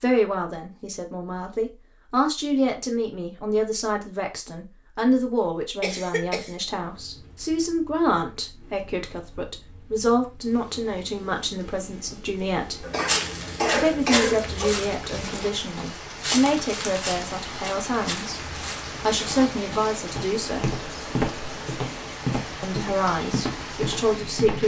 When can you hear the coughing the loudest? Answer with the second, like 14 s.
14 s.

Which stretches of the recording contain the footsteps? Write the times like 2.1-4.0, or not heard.
13.1-24.6.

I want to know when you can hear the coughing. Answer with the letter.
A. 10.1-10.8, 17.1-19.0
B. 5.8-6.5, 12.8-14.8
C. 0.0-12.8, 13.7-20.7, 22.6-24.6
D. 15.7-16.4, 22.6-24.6
B.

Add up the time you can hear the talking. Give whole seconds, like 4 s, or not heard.
22 s.